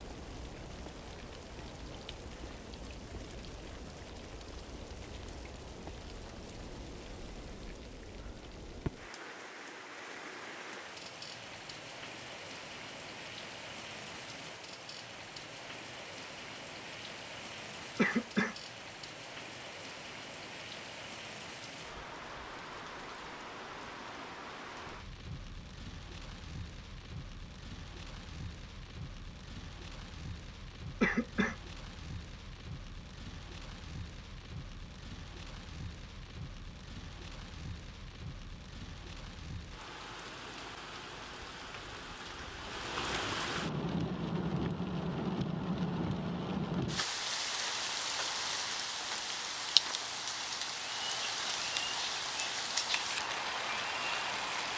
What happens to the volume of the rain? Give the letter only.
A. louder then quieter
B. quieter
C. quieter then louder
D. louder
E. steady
D.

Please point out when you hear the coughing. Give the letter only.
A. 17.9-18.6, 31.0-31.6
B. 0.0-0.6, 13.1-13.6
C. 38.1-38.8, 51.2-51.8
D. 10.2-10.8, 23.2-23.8
A.